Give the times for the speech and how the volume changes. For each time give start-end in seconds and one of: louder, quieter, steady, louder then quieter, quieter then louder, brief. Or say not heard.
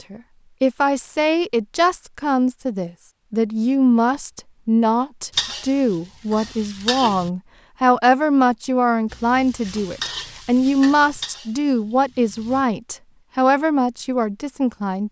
0.1-15.0 steady.